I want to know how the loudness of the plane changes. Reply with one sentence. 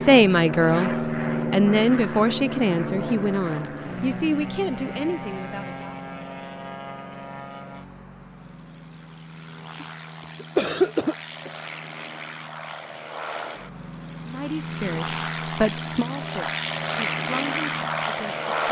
The volume of the plane goes down, then up.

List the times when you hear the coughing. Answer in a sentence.
The coughing can be heard from 9.8 to 11.5 s.